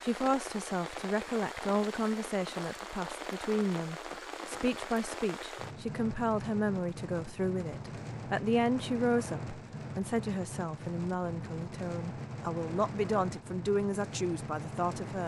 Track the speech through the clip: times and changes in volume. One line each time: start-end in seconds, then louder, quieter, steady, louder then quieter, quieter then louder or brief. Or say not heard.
0.0-15.2 steady.